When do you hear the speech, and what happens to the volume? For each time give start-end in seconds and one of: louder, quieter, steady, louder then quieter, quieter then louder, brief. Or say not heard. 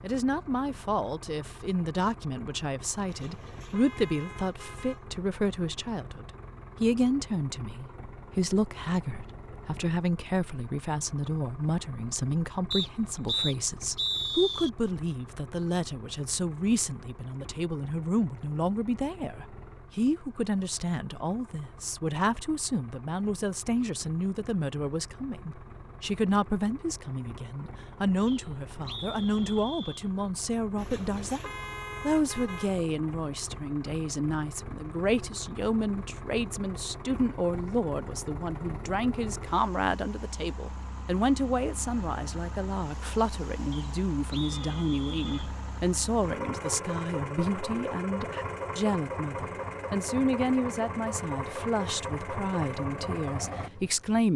0.0-54.3 steady.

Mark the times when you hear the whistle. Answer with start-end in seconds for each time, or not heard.
12.7-14.7, 28.2-30.1, 43.7-45.5.